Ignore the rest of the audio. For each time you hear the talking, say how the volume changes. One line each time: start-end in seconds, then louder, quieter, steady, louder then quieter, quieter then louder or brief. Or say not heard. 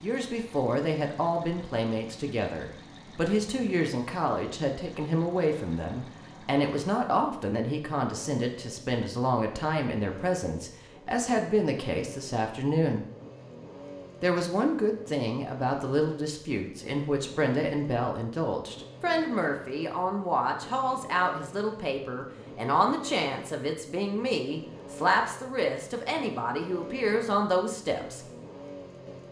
0.0-13.1 steady
14.2-28.2 steady.